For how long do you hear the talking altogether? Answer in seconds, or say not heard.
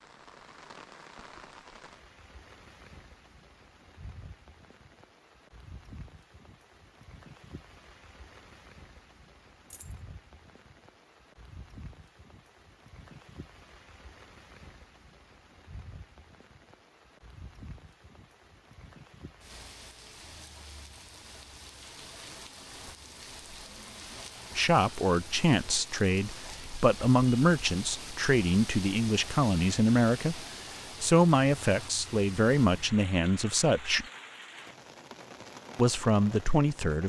11 s.